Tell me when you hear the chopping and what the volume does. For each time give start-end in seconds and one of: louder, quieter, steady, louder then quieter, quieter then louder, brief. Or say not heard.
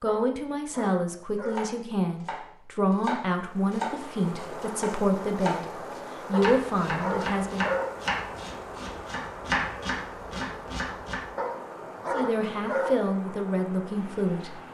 1.4-11.2 steady.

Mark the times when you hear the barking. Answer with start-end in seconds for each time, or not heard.
0.1-1.8, 6.3-8.1, 11.3-13.1.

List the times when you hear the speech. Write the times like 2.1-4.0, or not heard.
0.0-7.7, 12.1-14.6.